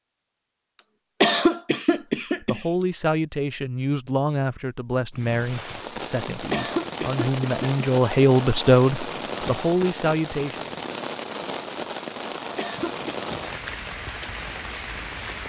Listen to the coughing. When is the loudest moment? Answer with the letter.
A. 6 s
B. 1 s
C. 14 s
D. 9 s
B.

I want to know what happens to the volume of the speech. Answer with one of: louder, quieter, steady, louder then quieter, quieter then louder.
quieter then louder.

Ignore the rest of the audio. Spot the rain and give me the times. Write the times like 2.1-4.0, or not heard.
5.1-15.4.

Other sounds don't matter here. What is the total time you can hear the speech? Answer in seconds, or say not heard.
8 s.